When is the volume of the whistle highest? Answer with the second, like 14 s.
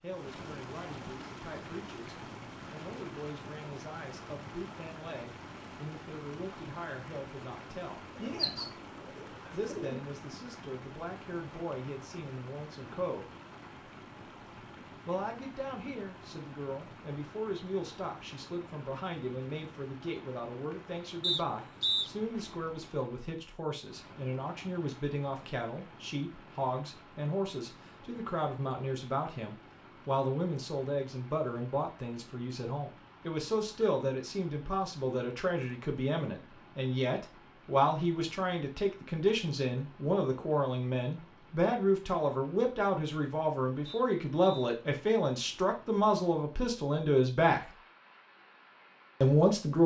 22 s.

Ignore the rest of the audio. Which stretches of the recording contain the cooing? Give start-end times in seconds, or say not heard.
8.2-10.0.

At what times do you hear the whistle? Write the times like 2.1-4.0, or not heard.
21.2-22.1, 43.9-44.7.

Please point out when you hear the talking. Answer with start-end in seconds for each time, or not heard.
0.0-8.7, 9.5-13.2, 15.1-47.6, 49.2-49.8.